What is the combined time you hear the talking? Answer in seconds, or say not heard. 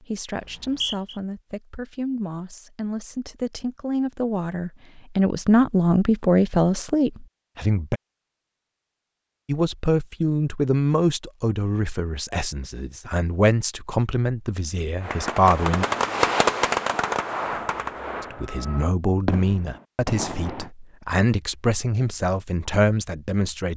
20 s.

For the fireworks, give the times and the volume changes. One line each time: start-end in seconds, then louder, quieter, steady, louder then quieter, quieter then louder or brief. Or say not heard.
15.0-20.7 quieter.